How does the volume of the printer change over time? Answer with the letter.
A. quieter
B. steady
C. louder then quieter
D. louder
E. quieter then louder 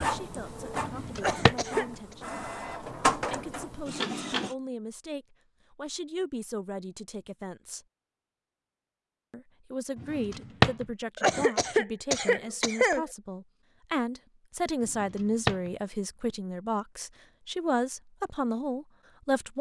C.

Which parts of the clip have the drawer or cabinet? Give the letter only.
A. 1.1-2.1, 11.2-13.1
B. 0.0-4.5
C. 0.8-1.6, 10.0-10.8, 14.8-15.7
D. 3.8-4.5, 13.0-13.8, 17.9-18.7
C.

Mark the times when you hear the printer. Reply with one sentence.
The printer can be heard from 0.0 to 4.5 s.